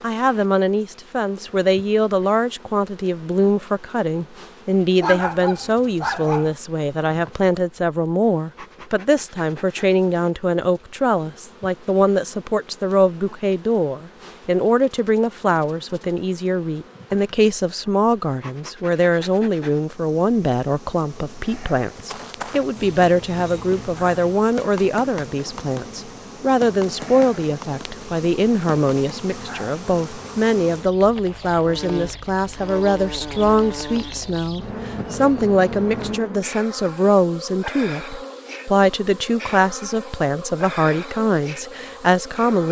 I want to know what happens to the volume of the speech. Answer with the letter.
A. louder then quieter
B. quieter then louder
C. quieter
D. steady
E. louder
D.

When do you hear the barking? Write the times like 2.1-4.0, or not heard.
5.0-6.5.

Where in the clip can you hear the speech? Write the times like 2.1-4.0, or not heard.
0.0-42.6.